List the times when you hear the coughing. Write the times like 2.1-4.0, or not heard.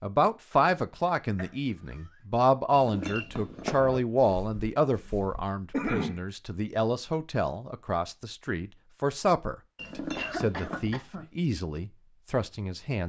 0.5-2.2, 5.7-6.2, 9.8-11.2.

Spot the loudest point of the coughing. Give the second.
6 s.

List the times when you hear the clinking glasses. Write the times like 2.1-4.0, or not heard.
2.7-3.9, 9.8-11.1.